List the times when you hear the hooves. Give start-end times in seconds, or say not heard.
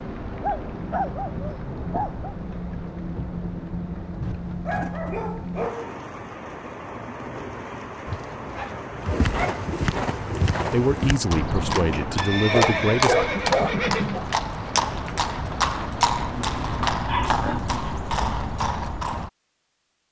9.0-19.3.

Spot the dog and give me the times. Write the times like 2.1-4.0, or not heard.
0.3-2.3, 4.2-6.0, 8.1-9.7, 12.4-14.2, 16.3-17.9.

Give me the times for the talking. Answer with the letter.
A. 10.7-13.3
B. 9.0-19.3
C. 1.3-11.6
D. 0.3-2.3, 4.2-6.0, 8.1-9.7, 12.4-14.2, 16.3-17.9
A.